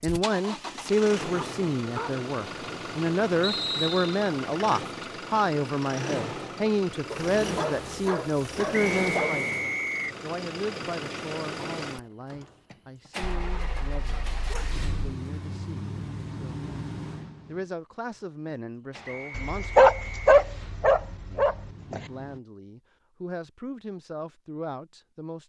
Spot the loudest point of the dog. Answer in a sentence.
The volume of the dog peaks at 20 seconds.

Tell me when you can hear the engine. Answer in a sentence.
You can hear the engine from 0.0 to 22.4 s.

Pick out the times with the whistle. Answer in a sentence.
You can hear the whistle from 3.4 to 4.2 s, from 8.7 to 10.2 s and from 19.1 to 20.2 s.